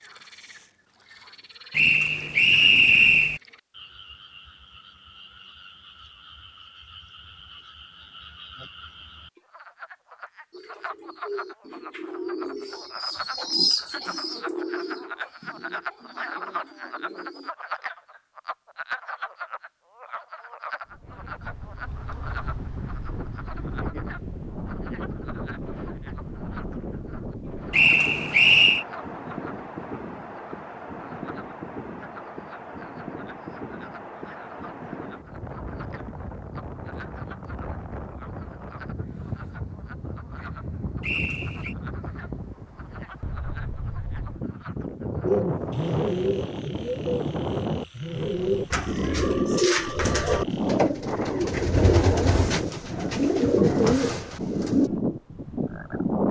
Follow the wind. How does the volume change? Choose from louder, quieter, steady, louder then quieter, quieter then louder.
louder.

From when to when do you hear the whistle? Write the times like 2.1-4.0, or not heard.
1.7-3.4, 27.7-28.9, 41.0-41.8.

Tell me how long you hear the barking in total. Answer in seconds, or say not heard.
not heard.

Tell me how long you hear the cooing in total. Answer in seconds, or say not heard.
17 s.